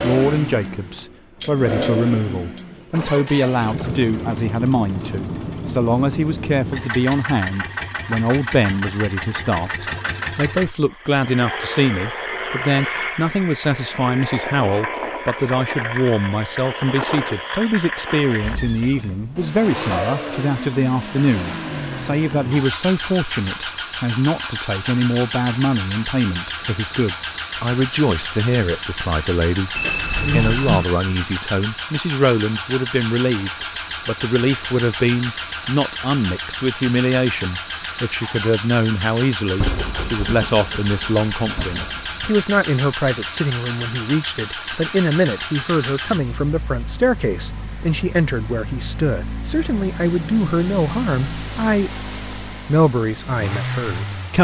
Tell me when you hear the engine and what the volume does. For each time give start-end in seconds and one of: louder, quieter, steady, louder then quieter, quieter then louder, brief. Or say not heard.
0.0-54.3 steady.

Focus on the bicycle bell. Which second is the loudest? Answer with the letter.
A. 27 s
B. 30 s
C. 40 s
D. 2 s
B.